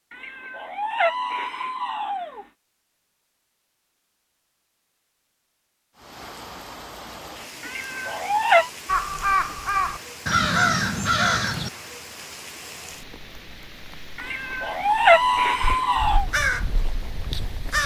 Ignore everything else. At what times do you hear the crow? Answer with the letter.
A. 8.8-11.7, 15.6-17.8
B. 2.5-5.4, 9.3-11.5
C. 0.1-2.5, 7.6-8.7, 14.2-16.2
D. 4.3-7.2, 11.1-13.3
A.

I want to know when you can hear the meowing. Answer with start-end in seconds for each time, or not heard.
0.1-2.5, 7.6-8.7, 14.2-16.2.